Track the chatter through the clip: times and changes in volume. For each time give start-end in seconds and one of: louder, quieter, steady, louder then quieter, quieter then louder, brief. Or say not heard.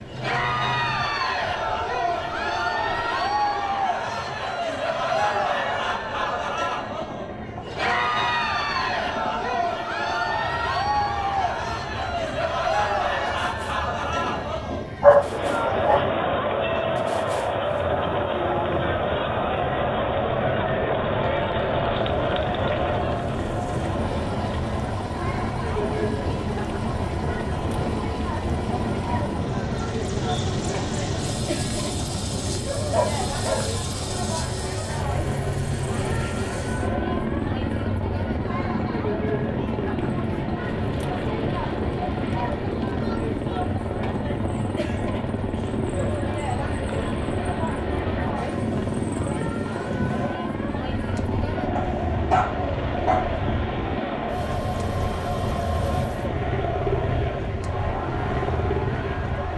0.1-59.5 quieter.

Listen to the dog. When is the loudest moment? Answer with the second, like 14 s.
15 s.